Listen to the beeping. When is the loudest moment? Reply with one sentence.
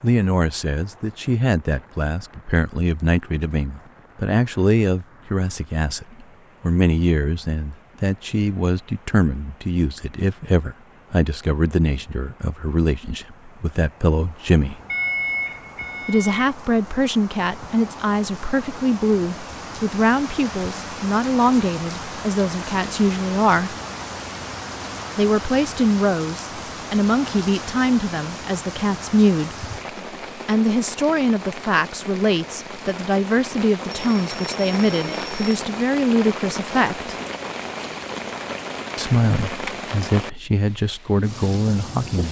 The loudest moment of the beeping is at 15 seconds.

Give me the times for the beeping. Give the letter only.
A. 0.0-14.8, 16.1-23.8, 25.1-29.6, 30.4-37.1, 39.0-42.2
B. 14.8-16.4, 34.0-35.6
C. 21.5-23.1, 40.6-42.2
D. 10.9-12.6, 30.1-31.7
B.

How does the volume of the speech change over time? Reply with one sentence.
The volume of the speech stays about the same.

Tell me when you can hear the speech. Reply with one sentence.
The speech can be heard from 0.0 to 14.8 s, from 16.1 to 23.8 s, from 25.1 to 29.6 s, from 30.4 to 37.1 s and from 39.0 to 42.2 s.